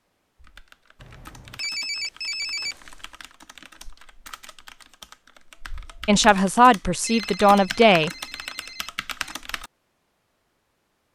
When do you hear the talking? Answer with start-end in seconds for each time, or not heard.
6.0-8.1.